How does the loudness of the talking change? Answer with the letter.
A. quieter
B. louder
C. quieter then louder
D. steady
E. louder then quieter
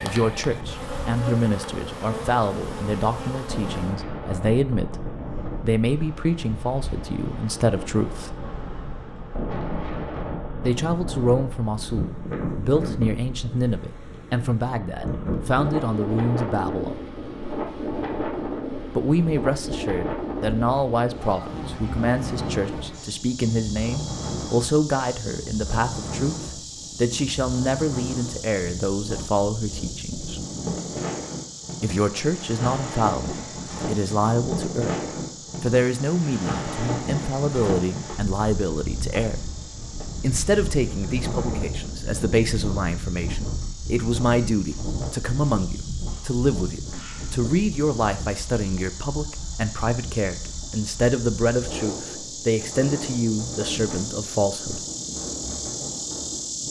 D.